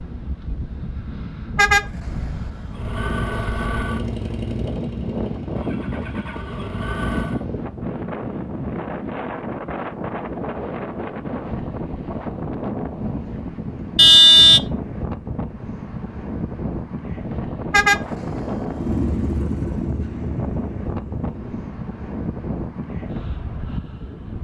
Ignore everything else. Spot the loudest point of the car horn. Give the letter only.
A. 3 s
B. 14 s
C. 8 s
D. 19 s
B.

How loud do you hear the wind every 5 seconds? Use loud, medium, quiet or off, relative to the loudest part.
medium, loud, loud, loud, loud.